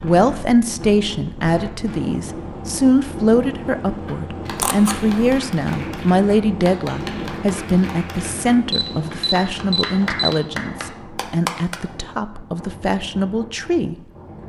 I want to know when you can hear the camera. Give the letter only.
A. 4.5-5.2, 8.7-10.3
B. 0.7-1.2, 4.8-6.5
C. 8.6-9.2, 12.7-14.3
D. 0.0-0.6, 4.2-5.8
A.